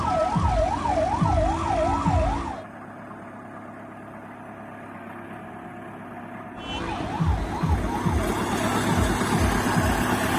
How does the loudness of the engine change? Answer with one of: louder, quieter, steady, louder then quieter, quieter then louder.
louder.